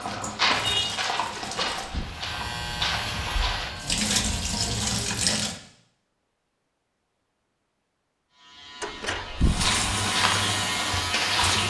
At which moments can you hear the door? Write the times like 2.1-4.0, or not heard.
1.4-2.1, 8.8-9.8.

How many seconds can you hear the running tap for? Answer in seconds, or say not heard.
6 s.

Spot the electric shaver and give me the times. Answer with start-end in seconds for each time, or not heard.
2.0-5.0, 8.3-11.6.